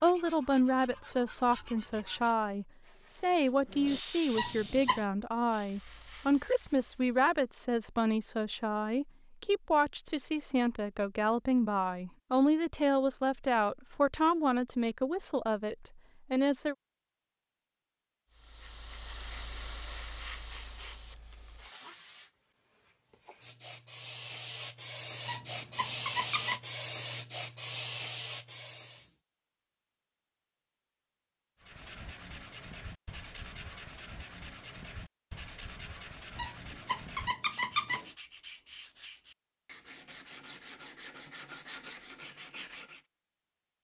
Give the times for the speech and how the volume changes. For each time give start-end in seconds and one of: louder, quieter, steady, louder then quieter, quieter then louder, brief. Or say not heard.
0.0-16.8 steady.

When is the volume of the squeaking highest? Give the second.
38 s.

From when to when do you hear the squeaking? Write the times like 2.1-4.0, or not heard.
4.3-5.0, 25.2-26.6, 36.4-38.0.